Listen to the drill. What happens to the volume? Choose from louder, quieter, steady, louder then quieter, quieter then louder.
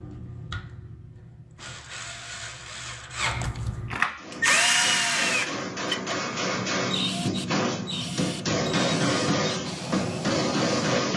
louder then quieter.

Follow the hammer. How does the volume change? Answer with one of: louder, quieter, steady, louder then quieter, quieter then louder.
louder.